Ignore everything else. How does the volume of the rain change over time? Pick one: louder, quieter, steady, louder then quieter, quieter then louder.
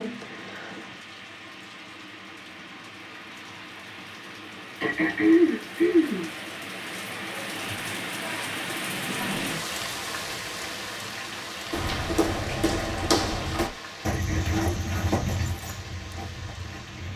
louder then quieter.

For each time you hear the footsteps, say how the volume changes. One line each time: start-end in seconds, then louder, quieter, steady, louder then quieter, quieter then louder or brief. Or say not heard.
11.7-17.1 quieter.